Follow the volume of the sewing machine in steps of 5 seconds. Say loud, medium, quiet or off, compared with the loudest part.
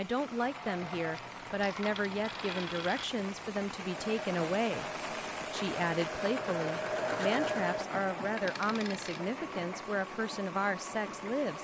medium, loud, medium.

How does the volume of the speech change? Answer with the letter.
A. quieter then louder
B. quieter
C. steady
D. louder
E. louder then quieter
C.